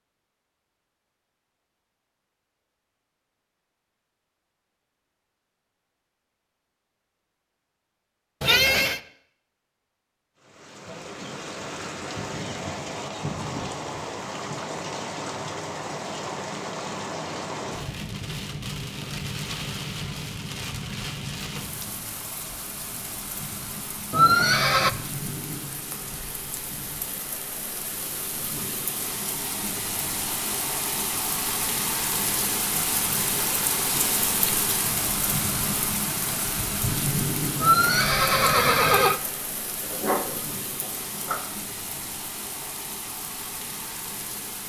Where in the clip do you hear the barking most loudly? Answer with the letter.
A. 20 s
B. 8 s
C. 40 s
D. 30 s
C.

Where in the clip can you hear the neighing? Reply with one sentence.
The neighing can be heard from 8.4 to 9.0 s, from 24.1 to 24.9 s and from 37.6 to 39.2 s.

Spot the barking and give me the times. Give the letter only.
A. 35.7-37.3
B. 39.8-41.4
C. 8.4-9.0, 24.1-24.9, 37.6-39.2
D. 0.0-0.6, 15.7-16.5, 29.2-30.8
B.